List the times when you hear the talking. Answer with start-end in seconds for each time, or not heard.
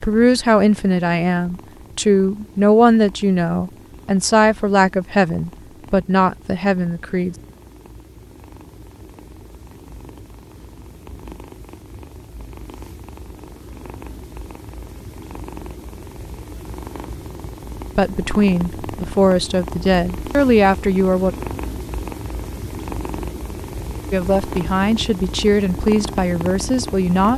0.0-7.3, 17.9-21.4, 24.1-27.3.